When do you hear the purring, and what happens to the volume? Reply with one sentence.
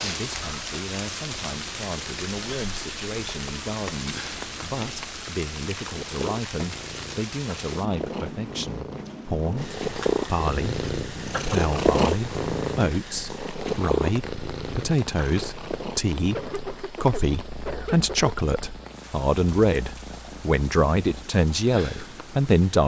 You can hear the purring from 0.0 to 22.6 s, getting louder then quieter.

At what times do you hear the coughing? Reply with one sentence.
The coughing can be heard from 16.3 to 18.4 s.